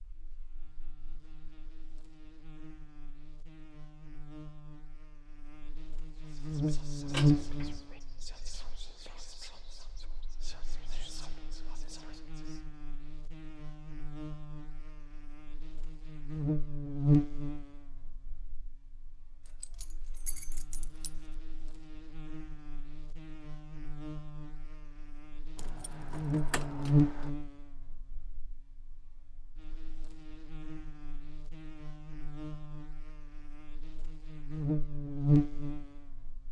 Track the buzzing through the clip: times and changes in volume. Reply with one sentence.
You can hear the buzzing from 0.0 to 36.4 s, getting quieter then louder.